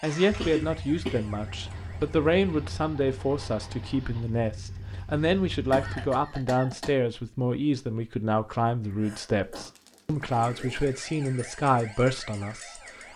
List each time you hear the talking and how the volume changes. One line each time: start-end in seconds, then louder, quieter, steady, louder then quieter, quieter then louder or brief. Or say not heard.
0.0-13.1 steady.